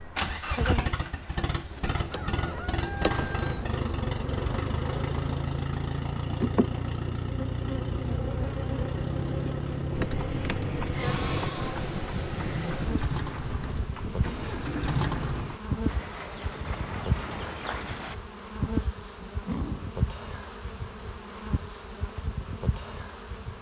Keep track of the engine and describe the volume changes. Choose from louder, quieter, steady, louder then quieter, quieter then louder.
steady.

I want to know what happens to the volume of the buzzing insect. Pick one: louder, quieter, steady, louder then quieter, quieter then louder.
steady.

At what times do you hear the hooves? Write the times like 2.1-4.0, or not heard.
9.9-18.1.